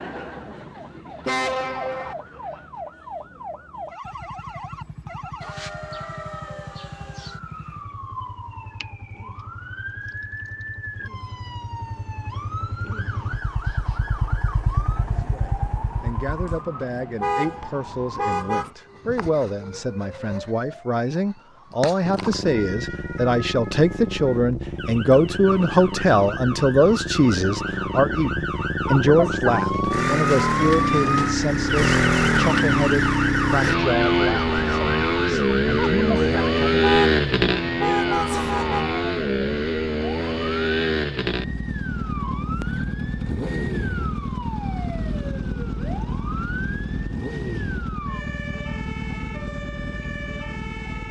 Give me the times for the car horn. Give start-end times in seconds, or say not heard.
1.2-2.1, 17.2-18.7, 36.8-38.9.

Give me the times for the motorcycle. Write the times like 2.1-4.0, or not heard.
4.0-16.6, 22.0-51.0.